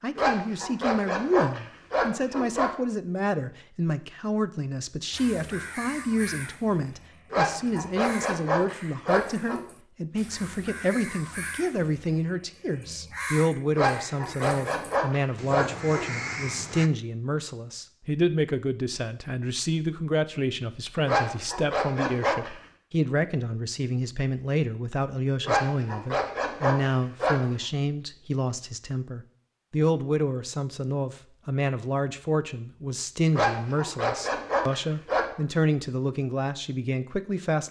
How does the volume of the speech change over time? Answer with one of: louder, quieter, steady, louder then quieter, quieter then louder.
steady.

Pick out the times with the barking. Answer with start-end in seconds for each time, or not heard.
0.1-2.7, 7.3-9.6, 13.8-16.2, 21.1-22.6, 25.4-27.4, 33.3-35.2.